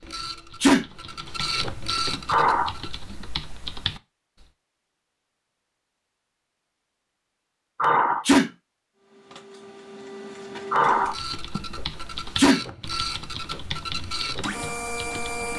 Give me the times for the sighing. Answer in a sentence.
You can hear the sighing from 2.2 to 2.8 s, from 7.8 to 8.2 s and from 10.7 to 11.6 s.